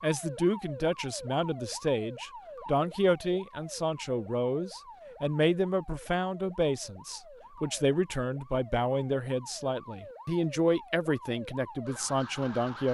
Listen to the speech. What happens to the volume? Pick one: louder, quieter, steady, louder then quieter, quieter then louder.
steady.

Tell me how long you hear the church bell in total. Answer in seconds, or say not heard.
not heard.